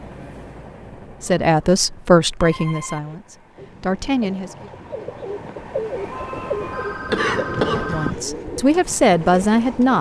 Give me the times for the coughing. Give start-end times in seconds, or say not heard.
7.0-8.2.